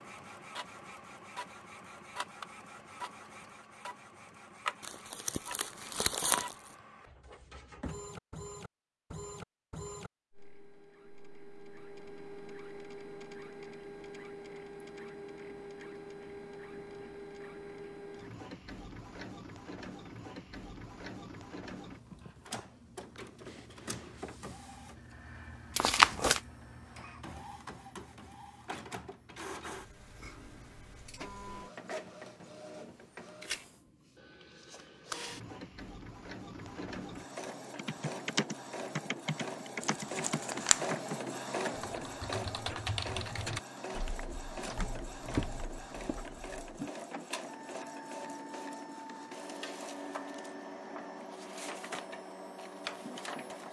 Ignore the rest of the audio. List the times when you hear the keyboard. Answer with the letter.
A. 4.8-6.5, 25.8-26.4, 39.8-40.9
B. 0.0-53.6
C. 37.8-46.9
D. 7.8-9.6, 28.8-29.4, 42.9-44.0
C.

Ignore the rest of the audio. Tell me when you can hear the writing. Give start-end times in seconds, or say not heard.
not heard.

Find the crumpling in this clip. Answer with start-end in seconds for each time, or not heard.
4.8-6.5, 25.8-26.4, 39.8-40.9.